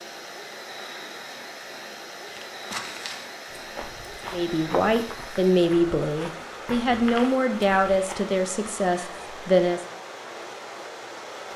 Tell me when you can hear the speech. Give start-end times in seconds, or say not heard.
4.3-9.8.